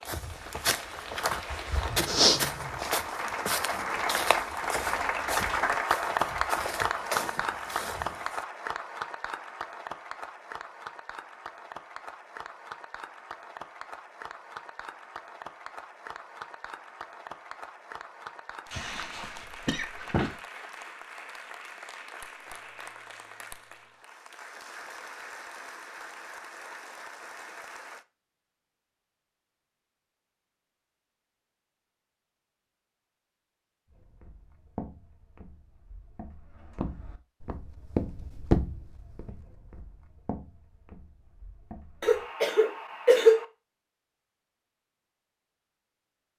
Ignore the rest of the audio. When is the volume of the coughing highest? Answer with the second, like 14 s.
43 s.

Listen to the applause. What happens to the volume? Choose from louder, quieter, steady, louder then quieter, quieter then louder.
quieter.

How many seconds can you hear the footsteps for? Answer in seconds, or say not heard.
17 s.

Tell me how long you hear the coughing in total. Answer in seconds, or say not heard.
3 s.